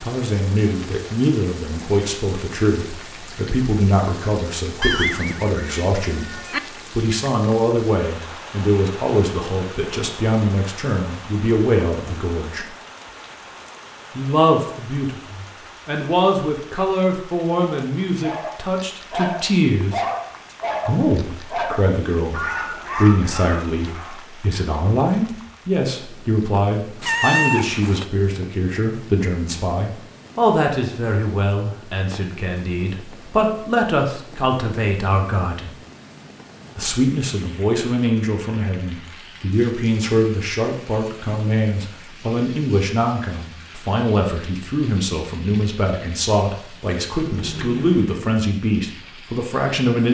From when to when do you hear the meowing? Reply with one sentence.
The meowing can be heard from 4.8 to 6.6 s, from 27.0 to 28.1 s and from 47.2 to 47.9 s.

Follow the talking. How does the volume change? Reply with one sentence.
The volume of the talking stays about the same.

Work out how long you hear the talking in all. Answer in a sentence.
You can hear the talking for 46 seconds altogether.